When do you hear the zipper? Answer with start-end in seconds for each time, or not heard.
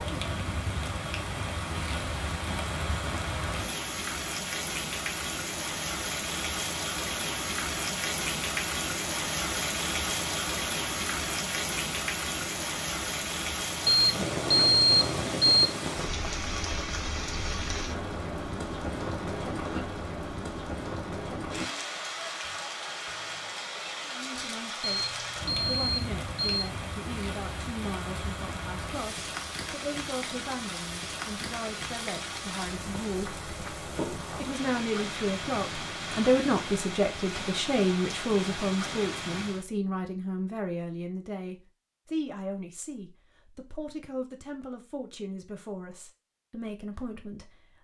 not heard.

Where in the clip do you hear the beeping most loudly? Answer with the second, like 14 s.
15 s.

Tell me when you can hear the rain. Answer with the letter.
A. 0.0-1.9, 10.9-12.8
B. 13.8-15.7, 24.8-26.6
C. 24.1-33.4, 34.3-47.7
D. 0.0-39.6
D.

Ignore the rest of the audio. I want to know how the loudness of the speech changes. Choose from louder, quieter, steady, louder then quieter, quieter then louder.
louder then quieter.